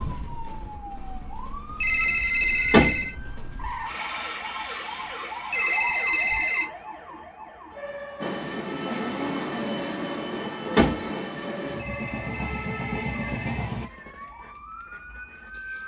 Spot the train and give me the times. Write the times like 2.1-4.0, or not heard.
8.2-13.9.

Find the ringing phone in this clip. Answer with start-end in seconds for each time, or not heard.
1.8-3.1, 5.5-6.7, 11.8-13.7.